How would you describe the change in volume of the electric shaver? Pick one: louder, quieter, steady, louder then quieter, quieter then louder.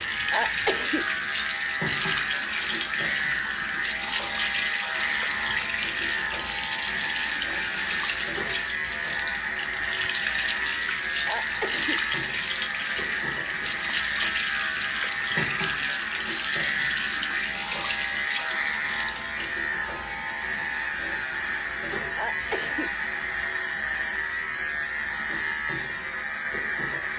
steady.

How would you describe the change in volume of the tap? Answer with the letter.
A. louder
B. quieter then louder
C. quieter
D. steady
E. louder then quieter
D.